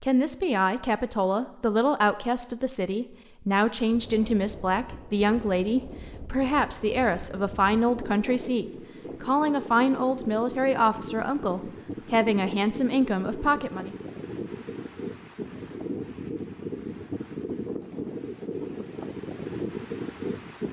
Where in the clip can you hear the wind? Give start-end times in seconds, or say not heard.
3.9-20.6.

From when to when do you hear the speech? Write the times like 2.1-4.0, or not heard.
0.0-14.0.